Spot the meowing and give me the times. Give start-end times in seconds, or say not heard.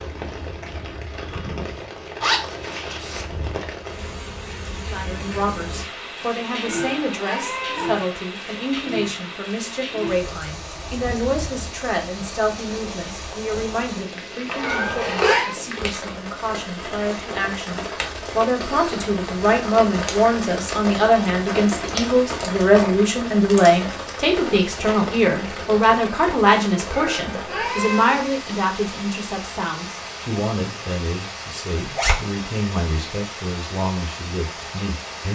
6.5-8.0, 14.4-15.6, 26.8-28.3.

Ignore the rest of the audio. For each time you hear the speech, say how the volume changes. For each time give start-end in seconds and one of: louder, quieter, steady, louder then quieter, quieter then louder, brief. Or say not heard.
4.8-35.3 louder then quieter.